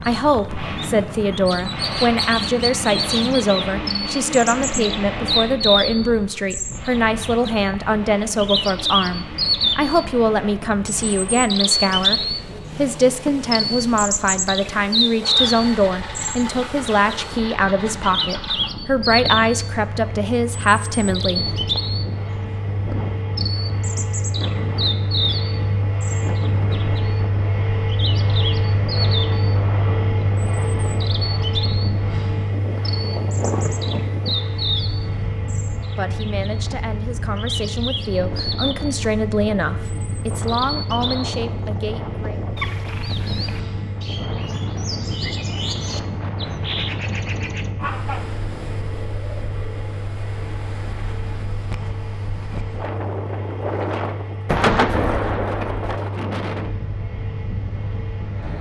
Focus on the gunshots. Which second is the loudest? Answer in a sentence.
The loudest moment of the gunshots is at 55 seconds.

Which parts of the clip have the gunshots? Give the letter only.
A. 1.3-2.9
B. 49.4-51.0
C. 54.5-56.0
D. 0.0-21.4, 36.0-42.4
C.